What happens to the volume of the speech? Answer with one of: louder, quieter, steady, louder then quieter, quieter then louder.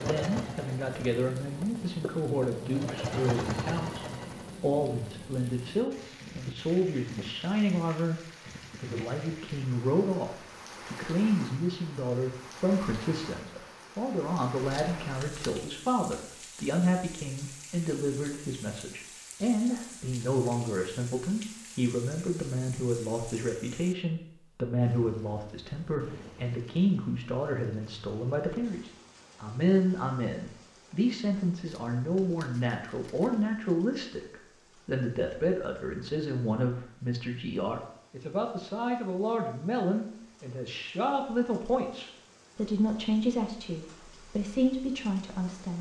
steady.